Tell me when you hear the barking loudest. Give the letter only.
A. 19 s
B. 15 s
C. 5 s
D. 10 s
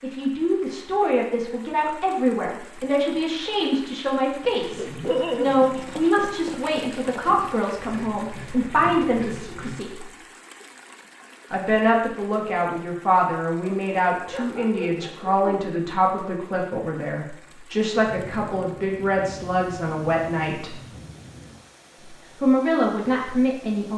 C.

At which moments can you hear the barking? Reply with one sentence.
You can hear the barking from 4.5 to 6.0 s and from 13.6 to 15.6 s.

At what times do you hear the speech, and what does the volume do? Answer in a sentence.
You can hear the speech from 0.0 to 10.1 s, at a steady volume; from 11.5 to 20.8 s, at a steady volume; and briefly from 22.4 to 23.9 s.